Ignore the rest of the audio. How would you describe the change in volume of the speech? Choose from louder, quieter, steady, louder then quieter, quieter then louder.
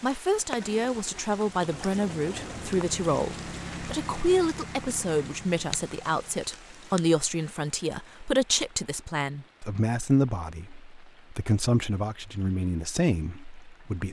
steady.